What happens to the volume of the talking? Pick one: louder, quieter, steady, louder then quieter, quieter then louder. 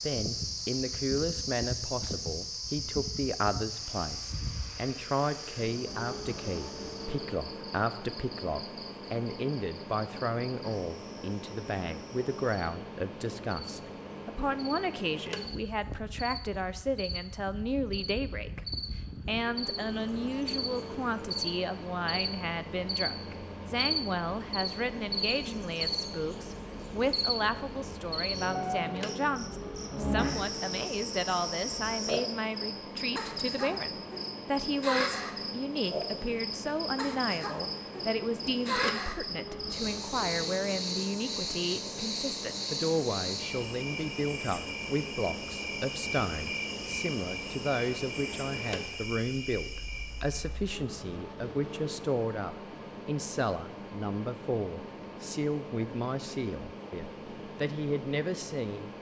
steady.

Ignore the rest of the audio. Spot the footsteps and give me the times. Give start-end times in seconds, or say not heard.
not heard.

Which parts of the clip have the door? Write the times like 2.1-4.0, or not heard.
not heard.